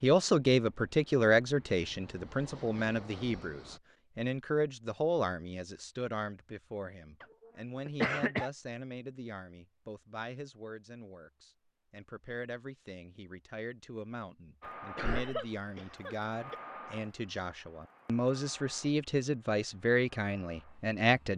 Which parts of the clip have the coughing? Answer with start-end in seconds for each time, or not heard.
7.8-8.5, 14.7-16.6.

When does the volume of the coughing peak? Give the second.
8 s.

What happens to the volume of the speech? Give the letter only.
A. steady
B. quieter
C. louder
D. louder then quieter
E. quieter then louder
E.